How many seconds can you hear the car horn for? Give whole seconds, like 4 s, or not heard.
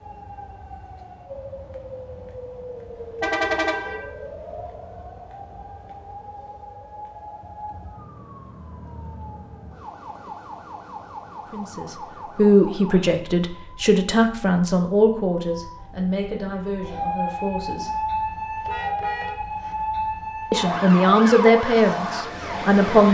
3 s.